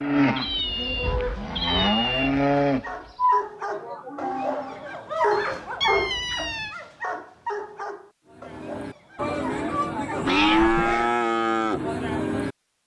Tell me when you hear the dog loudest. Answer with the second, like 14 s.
5 s.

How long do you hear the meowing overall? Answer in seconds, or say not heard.
4 s.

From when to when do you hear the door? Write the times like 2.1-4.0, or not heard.
not heard.